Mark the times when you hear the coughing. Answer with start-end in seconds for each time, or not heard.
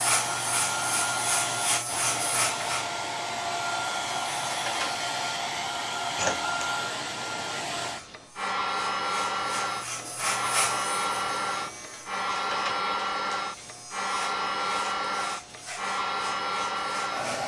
not heard.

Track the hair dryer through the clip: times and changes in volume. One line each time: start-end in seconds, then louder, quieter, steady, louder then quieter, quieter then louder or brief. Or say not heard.
0.0-17.4 steady.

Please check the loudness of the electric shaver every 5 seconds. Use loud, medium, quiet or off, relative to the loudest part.
loud, medium, medium, medium.